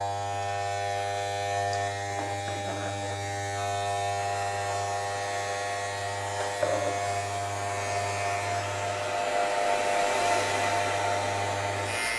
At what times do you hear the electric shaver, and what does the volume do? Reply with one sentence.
The electric shaver can be heard from 0.0 to 12.1 s, at a steady volume.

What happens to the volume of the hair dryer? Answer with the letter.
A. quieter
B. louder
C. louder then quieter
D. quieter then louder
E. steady
B.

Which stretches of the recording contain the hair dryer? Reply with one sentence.
The hair dryer can be heard from 4.2 to 12.1 s.